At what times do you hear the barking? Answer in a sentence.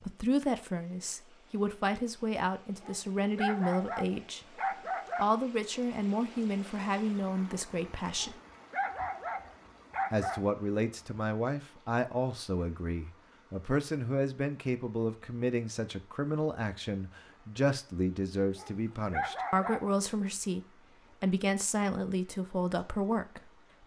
You can hear the barking from 2.8 to 5.2 s, from 8.2 to 10.4 s and from 18.6 to 19.9 s.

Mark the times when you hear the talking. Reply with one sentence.
The talking can be heard from 0.0 to 4.5 s, from 5.2 to 8.4 s, from 10.1 to 20.6 s and from 21.2 to 23.8 s.